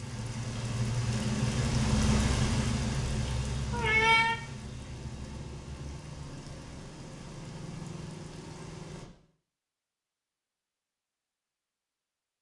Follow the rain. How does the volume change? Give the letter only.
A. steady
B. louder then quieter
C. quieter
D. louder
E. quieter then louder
C.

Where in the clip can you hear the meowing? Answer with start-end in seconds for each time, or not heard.
3.7-4.3.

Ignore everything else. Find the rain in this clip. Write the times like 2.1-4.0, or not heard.
0.0-9.1.